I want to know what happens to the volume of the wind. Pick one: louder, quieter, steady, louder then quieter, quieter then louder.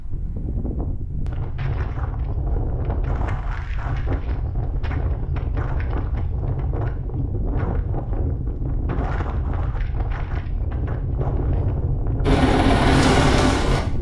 steady.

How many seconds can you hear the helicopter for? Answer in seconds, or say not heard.
2 s.